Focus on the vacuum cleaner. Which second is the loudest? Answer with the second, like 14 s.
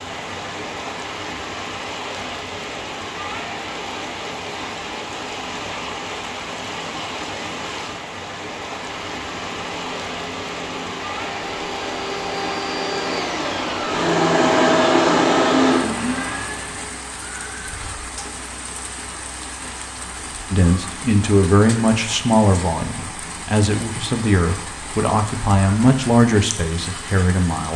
15 s.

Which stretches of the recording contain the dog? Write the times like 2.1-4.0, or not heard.
not heard.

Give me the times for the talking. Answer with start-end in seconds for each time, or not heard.
20.5-27.7.